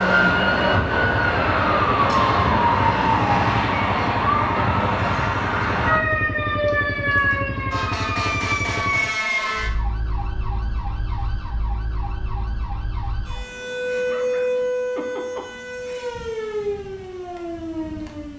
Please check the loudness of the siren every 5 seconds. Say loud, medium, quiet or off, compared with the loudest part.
loud, loud, medium, medium.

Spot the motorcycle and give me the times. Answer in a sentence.
The motorcycle can be heard from 0.0 to 9.2 s.